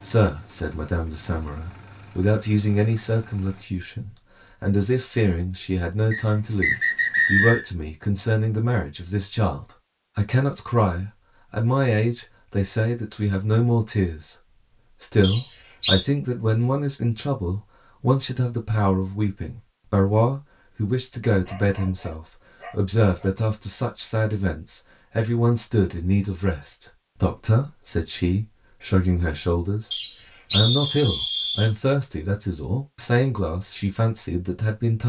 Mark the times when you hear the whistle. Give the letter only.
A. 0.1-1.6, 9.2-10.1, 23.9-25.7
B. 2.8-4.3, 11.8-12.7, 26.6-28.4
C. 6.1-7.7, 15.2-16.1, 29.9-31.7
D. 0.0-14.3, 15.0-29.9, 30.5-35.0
C.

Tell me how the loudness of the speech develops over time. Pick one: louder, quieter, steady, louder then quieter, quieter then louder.
steady.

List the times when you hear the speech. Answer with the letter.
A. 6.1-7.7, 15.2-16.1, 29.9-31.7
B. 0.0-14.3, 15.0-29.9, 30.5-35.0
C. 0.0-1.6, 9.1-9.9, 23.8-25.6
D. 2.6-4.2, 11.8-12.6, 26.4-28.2
B.